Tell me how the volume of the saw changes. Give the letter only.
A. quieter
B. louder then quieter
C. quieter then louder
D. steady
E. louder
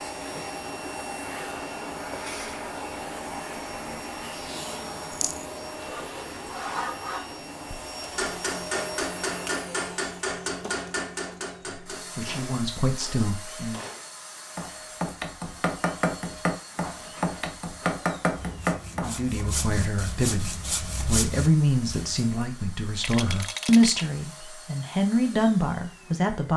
E.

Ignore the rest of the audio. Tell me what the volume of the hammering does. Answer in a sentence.
The volume of the hammering goes down, then up.